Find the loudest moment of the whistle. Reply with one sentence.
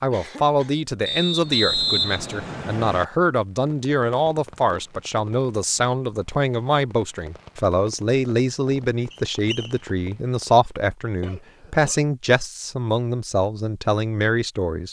The loudest moment of the whistle is at 2 seconds.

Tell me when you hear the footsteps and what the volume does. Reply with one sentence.
You can't hear the footsteps here.